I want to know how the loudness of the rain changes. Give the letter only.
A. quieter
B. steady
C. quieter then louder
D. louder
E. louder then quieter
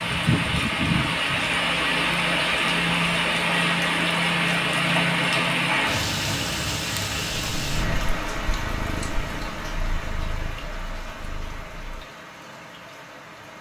A.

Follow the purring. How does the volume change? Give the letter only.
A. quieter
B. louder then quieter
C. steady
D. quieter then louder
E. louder
A.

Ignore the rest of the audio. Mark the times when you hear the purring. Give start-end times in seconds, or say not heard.
7.3-12.1.